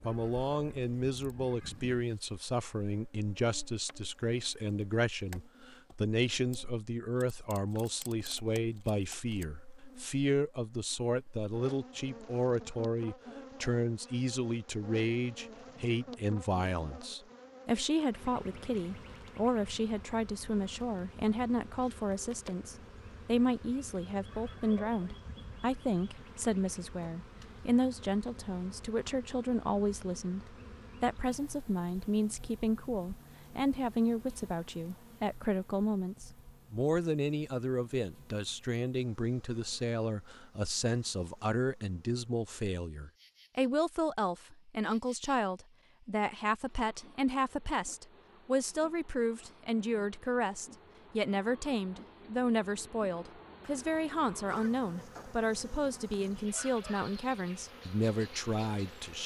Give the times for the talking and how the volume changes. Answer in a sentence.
The talking can be heard from 0.0 to 59.2 s, at a steady volume.